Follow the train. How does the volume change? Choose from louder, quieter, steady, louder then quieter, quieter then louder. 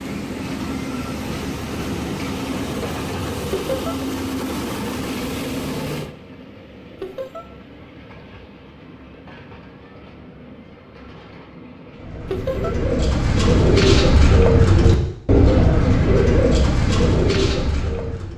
quieter.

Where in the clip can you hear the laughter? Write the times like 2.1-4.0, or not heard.
3.5-4.0, 7.0-7.5, 12.3-12.8.